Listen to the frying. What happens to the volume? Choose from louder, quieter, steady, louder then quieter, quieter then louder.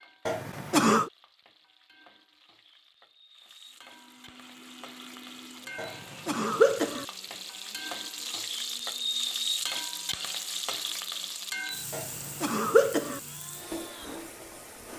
louder then quieter.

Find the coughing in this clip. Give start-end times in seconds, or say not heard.
0.2-1.1, 5.8-7.0, 11.9-13.2.